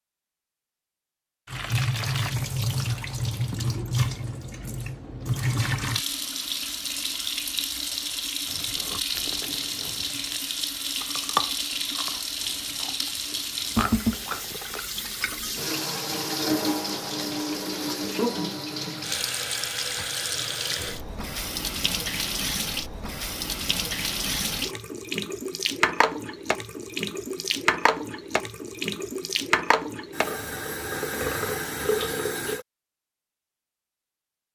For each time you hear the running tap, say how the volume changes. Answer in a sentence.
The running tap can be heard from 1.4 to 32.6 s, at a steady volume.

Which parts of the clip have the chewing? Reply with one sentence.
You can hear the chewing from 8.4 to 14.8 s.